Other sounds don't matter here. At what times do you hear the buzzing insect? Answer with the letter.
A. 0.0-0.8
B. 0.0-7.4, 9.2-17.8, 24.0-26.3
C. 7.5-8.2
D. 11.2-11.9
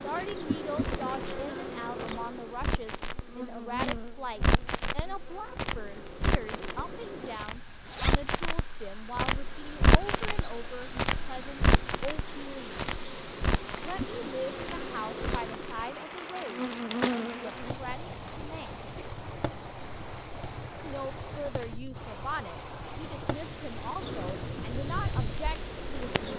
B.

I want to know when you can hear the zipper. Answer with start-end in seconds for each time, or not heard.
7.5-8.2.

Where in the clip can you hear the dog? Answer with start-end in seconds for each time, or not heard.
not heard.